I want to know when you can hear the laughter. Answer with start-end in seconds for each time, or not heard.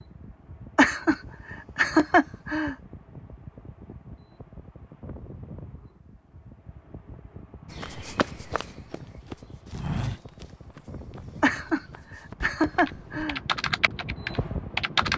0.8-2.8, 11.4-13.4.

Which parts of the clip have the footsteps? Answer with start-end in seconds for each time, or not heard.
7.7-13.2.